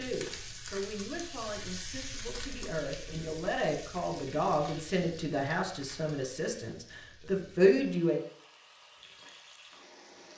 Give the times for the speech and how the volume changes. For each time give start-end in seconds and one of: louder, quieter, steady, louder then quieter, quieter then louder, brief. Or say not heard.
0.0-8.2 louder.